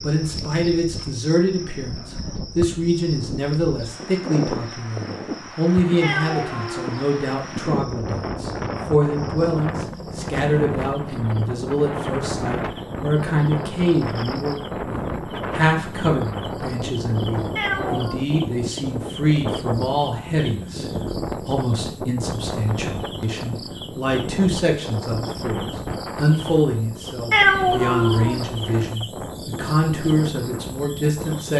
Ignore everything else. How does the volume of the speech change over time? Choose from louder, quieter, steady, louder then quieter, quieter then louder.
steady.